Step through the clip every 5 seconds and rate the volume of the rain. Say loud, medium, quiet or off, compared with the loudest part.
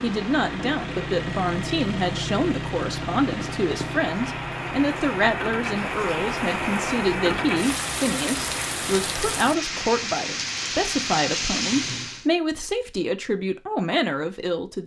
medium, loud, loud.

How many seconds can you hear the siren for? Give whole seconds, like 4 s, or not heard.
not heard.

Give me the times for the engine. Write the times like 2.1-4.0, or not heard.
0.0-9.6.